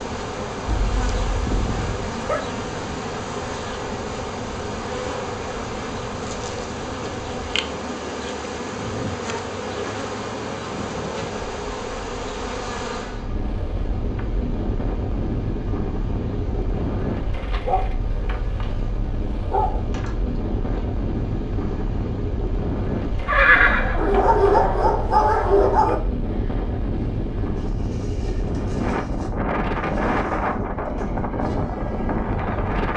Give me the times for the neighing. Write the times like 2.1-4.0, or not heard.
23.2-24.8.